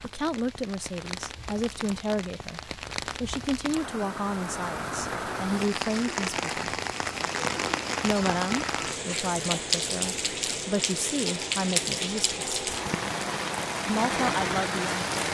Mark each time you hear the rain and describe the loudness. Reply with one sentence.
You can hear the rain from 0.0 to 15.2 s, getting louder.